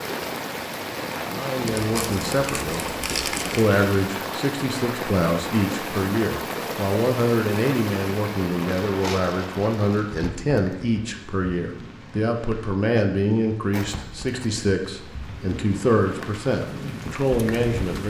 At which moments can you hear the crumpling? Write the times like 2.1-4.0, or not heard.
1.6-3.6, 8.7-10.3, 13.7-14.7.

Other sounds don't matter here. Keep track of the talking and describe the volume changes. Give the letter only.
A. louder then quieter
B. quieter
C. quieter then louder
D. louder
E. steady
E.